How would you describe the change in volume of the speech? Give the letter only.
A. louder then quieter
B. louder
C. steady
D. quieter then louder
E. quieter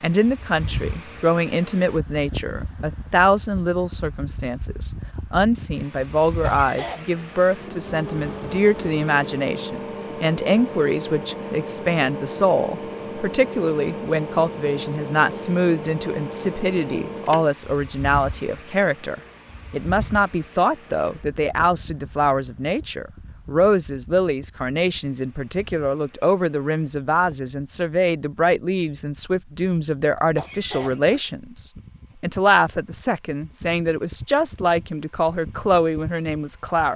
C.